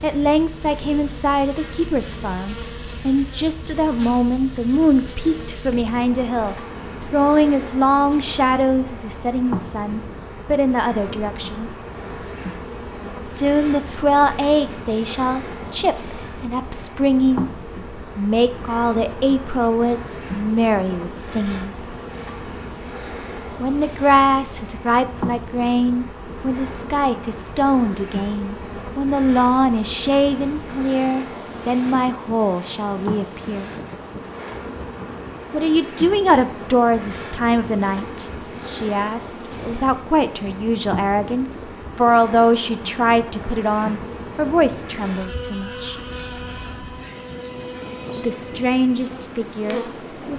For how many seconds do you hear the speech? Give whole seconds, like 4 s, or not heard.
42 s.